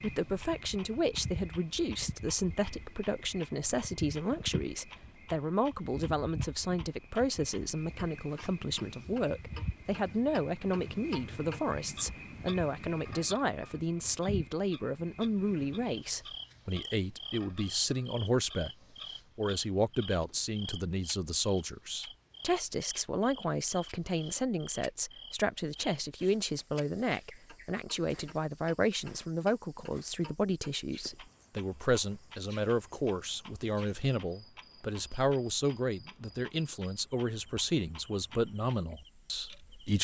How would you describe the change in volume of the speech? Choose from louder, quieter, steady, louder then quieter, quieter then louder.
steady.